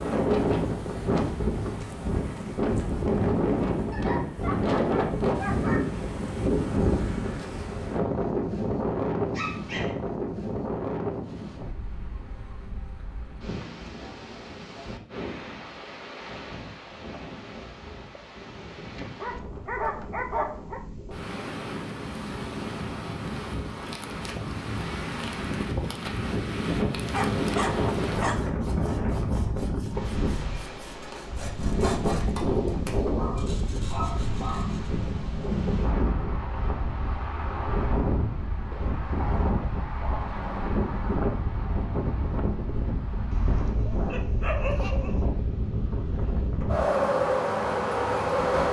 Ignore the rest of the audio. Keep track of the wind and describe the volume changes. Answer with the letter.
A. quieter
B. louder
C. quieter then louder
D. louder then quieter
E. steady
C.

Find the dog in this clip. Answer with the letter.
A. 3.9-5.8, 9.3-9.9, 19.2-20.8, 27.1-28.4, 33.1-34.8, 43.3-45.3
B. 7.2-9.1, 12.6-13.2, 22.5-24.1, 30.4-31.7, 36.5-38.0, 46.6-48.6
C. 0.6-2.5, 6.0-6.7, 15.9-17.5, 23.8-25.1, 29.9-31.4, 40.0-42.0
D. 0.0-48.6
A.